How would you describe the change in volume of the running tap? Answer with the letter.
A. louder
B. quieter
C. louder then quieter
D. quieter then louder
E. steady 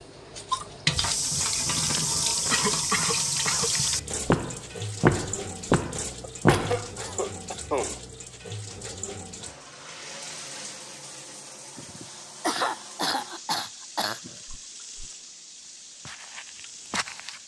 B.